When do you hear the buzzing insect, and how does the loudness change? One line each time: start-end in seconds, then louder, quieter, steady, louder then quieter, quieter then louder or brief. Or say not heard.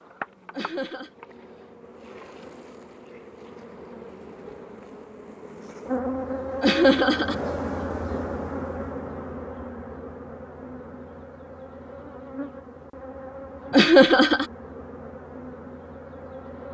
0.0-16.7 louder then quieter.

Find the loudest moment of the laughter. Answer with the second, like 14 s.
14 s.